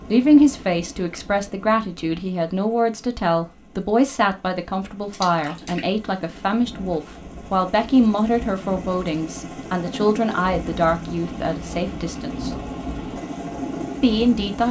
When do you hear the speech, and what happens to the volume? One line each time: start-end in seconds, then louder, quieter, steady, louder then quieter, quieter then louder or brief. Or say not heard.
0.0-12.5 steady
14.0-14.6 brief.